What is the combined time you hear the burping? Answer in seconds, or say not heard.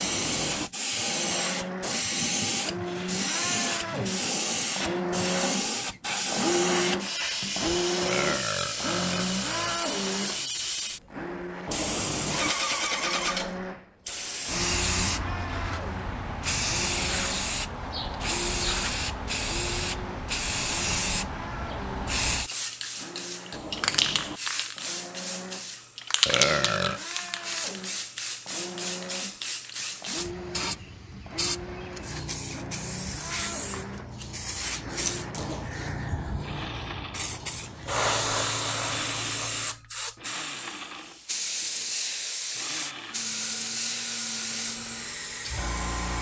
4 s.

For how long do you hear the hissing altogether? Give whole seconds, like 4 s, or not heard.
46 s.